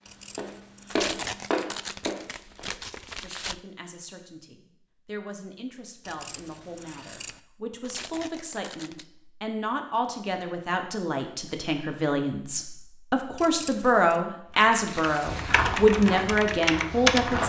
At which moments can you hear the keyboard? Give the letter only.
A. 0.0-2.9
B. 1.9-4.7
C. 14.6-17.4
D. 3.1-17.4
C.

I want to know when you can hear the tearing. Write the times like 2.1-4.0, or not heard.
0.9-3.6, 7.8-9.1, 14.8-15.7.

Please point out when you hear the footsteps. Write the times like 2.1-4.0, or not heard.
0.0-2.6, 15.2-17.4.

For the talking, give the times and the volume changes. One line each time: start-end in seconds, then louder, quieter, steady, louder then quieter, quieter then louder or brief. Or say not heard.
3.1-17.4 louder.